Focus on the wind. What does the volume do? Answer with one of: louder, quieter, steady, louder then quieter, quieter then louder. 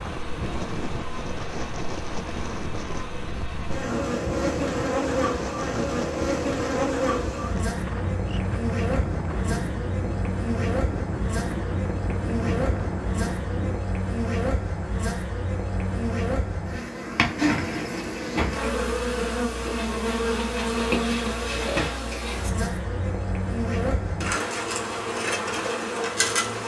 steady.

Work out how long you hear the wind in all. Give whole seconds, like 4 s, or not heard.
14 s.